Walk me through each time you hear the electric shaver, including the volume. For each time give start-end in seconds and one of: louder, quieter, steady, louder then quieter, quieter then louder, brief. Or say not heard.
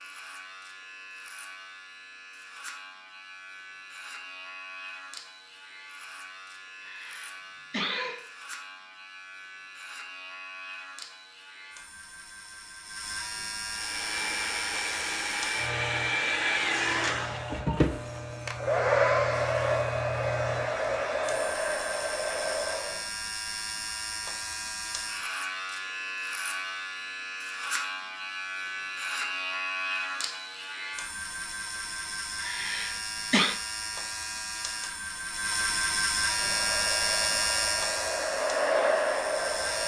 0.0-39.8 louder.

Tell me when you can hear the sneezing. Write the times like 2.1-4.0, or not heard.
6.8-8.2, 32.4-33.5.